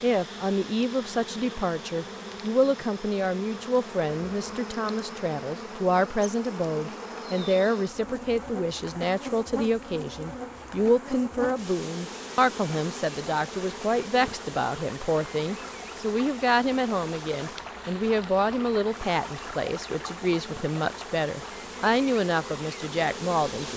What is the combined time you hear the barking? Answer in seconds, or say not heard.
not heard.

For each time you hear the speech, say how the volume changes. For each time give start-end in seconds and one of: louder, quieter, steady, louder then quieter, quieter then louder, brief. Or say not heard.
0.0-23.7 steady.